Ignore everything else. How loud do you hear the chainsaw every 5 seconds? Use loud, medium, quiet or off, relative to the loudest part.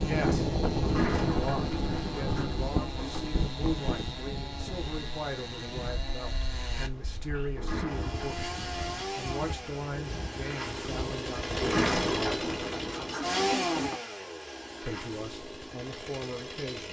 medium, medium, loud, medium.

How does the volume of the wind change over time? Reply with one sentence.
The loudness of the wind goes down.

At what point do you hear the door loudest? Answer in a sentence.
The loudest moment of the door is at 12 seconds.